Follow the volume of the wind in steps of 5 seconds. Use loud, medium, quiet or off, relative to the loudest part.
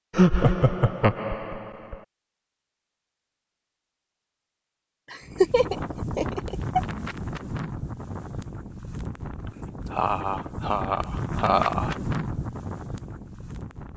off, loud, loud.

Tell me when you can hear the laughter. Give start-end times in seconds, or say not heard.
0.1-2.0, 5.1-6.8, 9.9-11.9.